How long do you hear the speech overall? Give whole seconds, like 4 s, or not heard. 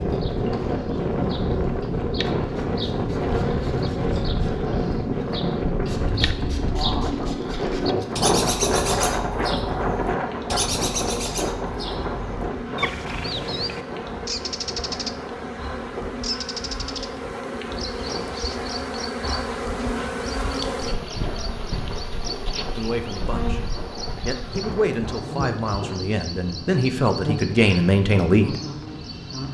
5 s.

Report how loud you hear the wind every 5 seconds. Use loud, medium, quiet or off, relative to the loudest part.
loud, loud, medium, quiet, quiet, quiet.